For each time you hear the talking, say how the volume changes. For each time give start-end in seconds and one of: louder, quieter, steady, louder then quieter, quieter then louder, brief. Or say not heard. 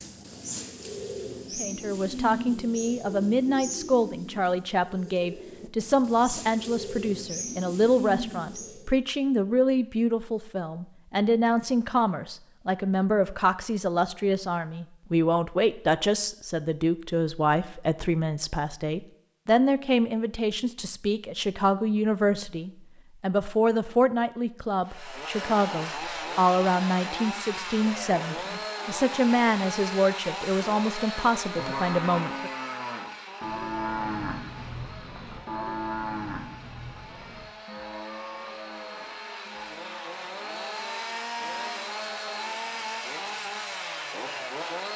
1.6-32.5 steady.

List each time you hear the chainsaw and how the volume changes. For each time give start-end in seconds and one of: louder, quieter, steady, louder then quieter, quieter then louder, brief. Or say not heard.
24.9-44.9 quieter then louder.